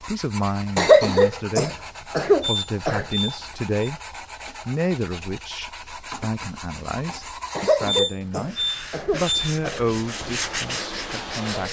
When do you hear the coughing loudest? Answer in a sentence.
The loudest moment of the coughing is at 1 second.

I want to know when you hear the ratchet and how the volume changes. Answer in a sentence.
The ratchet can't be heard in this clip.